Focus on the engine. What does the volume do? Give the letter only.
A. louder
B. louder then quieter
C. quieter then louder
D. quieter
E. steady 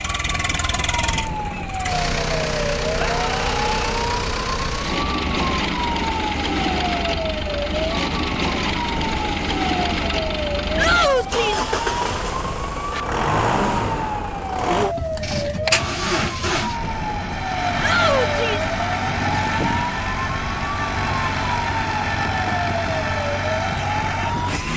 E.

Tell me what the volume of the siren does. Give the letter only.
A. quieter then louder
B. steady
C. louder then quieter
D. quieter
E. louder
B.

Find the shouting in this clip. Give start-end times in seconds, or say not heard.
3.0-3.8, 10.8-11.7, 17.8-18.8.